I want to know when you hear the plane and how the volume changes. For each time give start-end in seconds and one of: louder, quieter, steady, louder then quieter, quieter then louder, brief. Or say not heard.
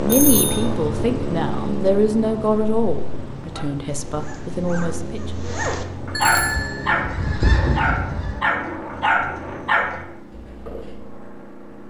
0.0-11.8 quieter.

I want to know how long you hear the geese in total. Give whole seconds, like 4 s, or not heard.
2 s.